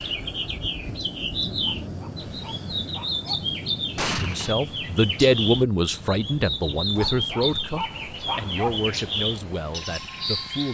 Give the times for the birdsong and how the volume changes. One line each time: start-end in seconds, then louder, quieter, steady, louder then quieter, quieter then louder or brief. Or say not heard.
0.0-10.7 steady.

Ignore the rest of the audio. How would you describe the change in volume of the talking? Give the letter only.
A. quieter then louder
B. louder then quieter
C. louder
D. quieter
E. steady
D.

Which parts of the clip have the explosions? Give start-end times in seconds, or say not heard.
4.0-4.5.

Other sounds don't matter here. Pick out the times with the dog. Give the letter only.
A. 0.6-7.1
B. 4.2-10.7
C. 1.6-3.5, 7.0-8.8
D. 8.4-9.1
C.